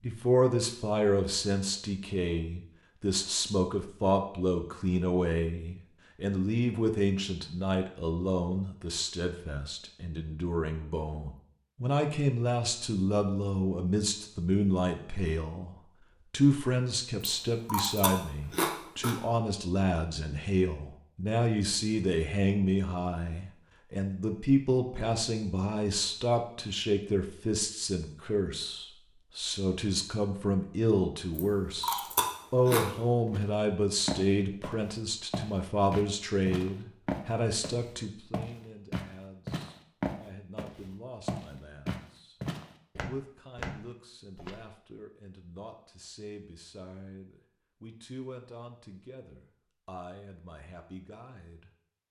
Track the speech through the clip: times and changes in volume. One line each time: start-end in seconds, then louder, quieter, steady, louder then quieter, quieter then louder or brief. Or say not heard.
0.0-51.7 quieter.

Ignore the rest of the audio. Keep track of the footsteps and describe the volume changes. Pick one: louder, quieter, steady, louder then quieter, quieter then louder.
steady.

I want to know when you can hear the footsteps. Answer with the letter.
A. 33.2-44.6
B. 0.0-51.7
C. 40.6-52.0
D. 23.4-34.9
A.